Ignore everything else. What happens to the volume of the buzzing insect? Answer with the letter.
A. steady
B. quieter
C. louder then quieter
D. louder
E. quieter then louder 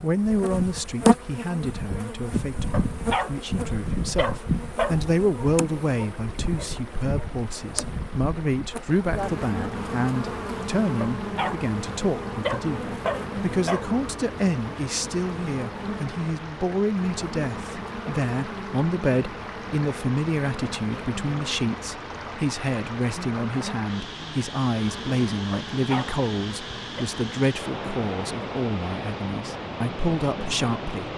B.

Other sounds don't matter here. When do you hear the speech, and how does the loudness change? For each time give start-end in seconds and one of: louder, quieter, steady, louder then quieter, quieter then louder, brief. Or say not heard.
0.0-31.1 steady.